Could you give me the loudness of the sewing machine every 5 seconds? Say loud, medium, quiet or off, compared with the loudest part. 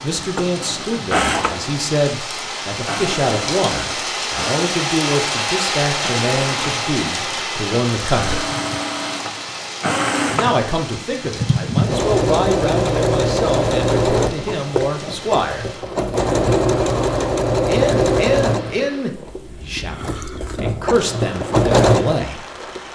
medium, medium, loud, loud, loud.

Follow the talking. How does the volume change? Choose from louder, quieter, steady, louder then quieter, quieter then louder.
steady.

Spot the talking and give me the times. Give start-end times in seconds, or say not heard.
0.0-8.4, 10.2-15.7, 17.6-22.4.